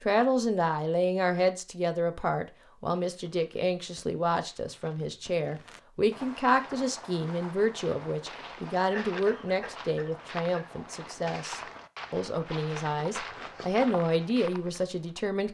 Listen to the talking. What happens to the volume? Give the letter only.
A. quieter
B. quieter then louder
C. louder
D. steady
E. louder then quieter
D.